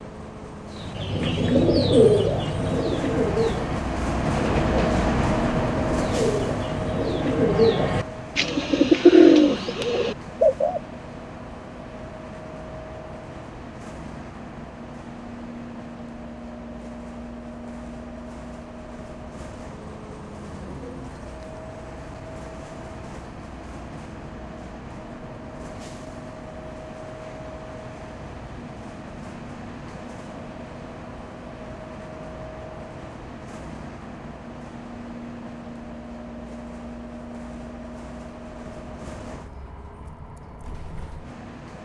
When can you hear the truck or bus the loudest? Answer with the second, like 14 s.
5 s.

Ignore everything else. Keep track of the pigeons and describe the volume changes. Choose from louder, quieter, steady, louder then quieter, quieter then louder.
quieter then louder.